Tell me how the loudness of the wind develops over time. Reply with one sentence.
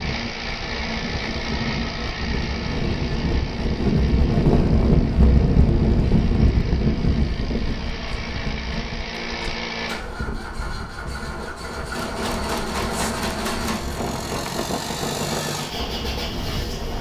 The volume of the wind goes up, then down.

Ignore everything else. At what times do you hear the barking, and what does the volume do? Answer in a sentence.
You can't hear the barking here.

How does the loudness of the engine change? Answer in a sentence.
The volume of the engine goes down, then up.